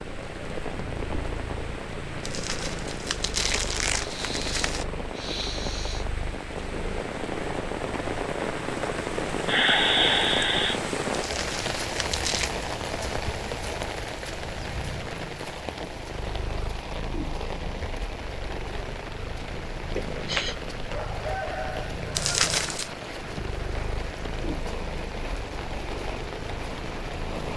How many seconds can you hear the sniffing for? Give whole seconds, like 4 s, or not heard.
4 s.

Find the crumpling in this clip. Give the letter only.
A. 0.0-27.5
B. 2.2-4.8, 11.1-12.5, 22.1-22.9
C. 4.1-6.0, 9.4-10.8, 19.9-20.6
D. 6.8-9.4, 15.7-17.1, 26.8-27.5
B.